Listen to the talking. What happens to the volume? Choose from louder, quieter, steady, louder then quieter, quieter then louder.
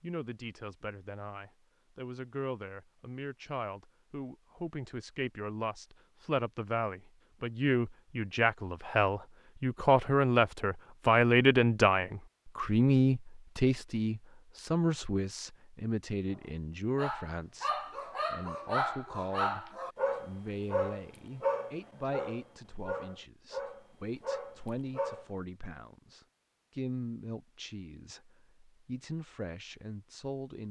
louder then quieter.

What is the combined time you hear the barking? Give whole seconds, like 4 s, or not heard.
8 s.